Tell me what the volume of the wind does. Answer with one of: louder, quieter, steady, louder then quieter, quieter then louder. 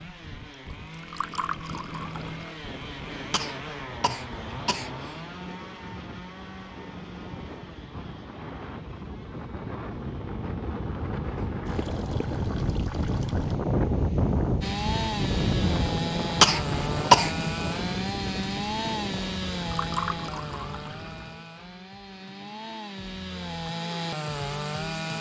louder then quieter.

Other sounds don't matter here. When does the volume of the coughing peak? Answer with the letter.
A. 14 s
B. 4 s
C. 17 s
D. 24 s
C.